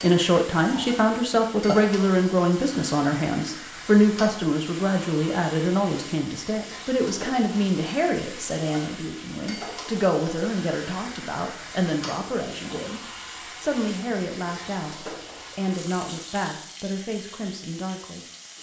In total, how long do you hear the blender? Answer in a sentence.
You can't hear the blender here.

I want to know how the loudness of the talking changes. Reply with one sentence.
The volume of the talking goes down.